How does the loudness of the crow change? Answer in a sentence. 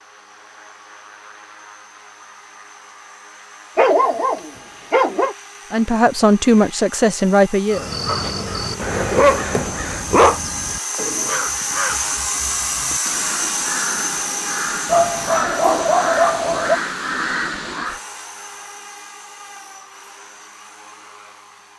The loudness of the crow goes down, then up.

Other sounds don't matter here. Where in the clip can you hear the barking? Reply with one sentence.
The barking can be heard from 3.8 to 5.3 s, from 8.1 to 10.4 s and from 14.8 to 16.8 s.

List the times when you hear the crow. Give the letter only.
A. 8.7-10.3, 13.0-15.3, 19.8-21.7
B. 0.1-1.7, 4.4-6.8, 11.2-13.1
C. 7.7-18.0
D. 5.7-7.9
C.